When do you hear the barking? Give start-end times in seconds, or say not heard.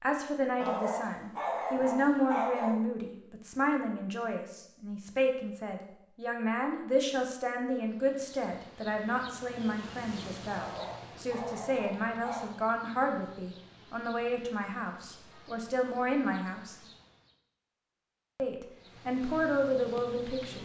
0.6-2.8, 10.5-12.6.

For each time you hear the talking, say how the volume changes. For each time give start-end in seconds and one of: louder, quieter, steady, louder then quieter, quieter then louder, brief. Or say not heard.
0.0-16.8 steady
18.4-20.6 brief.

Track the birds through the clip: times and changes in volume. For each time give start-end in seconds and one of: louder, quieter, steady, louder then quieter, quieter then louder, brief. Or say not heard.
not heard.